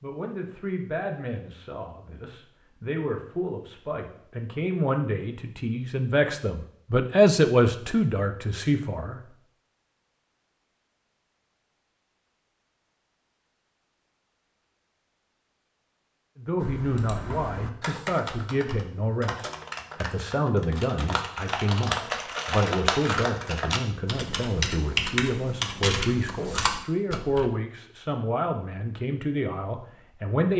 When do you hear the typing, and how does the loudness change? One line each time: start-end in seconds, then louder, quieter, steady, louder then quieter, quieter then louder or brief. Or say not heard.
16.6-27.4 louder.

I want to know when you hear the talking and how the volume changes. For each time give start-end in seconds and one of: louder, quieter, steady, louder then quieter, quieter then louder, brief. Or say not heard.
0.0-9.3 louder
16.4-30.5 steady.